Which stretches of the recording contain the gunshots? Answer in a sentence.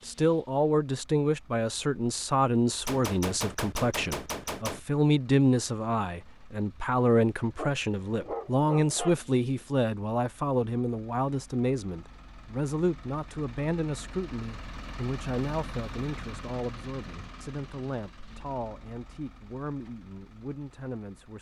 The gunshots can be heard from 2.9 to 4.8 s.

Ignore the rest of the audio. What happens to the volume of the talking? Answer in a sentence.
The volume of the talking goes down.